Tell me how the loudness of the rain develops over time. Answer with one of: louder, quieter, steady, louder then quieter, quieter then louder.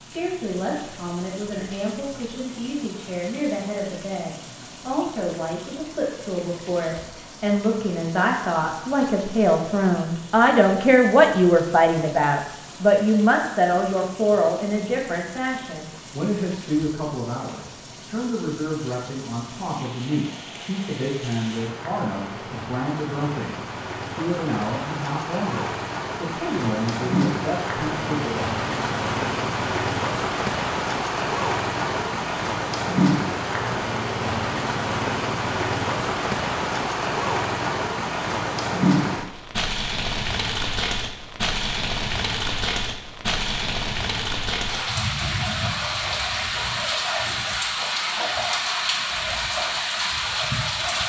louder.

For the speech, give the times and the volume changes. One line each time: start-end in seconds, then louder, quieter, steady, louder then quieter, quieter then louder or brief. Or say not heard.
0.0-28.4 louder then quieter.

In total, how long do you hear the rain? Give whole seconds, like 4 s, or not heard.
51 s.